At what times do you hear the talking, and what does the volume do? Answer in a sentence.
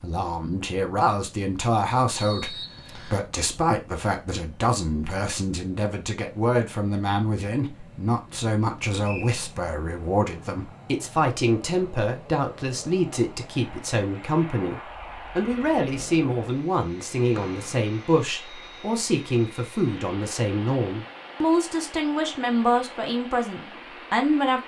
You can hear the talking from 0.0 to 24.6 s, at a steady volume.